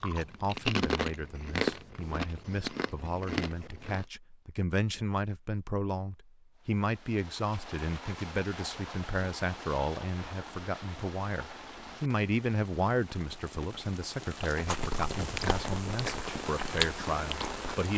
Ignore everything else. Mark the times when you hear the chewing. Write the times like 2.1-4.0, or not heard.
0.0-4.0, 14.6-17.6.